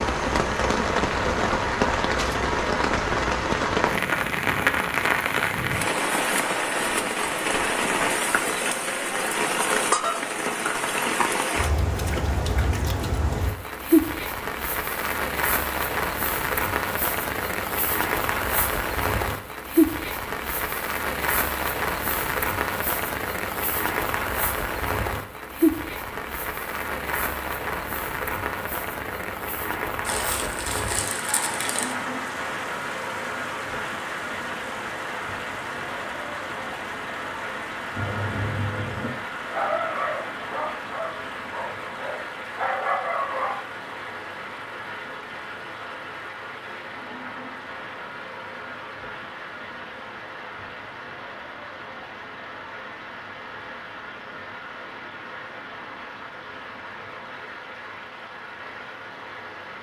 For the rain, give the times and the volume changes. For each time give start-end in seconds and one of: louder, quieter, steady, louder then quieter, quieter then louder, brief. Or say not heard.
0.0-59.7 quieter.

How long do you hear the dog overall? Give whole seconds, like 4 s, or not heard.
6 s.